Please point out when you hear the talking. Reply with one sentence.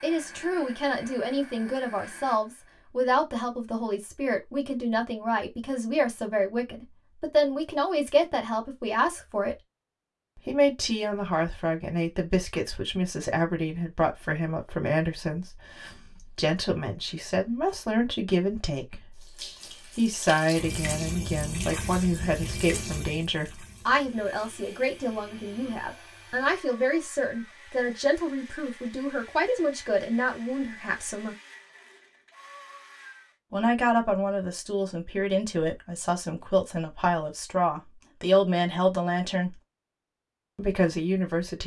The talking can be heard from 0.0 to 9.6 s, from 10.3 to 31.4 s, from 33.5 to 39.5 s and from 40.5 to 41.6 s.